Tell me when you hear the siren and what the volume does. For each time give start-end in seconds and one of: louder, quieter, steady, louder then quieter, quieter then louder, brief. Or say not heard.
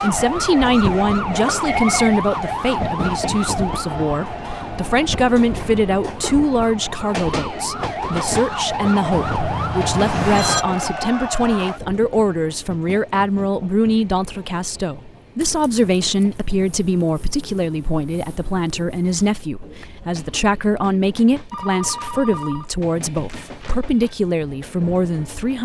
0.0-11.8 quieter then louder.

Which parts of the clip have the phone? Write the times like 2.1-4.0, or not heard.
1.4-2.1, 9.1-10.7, 21.5-23.9.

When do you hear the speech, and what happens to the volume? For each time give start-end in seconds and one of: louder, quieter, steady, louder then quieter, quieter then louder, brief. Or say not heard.
0.0-25.6 steady.